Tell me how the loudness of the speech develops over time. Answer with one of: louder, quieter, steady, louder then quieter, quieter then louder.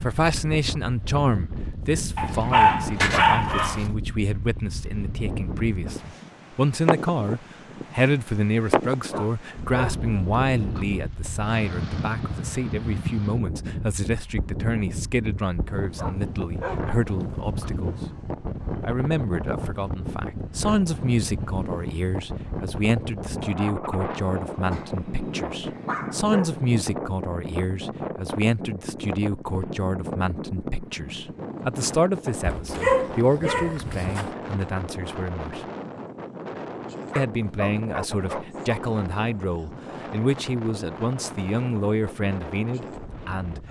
steady.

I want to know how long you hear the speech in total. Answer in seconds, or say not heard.
41 s.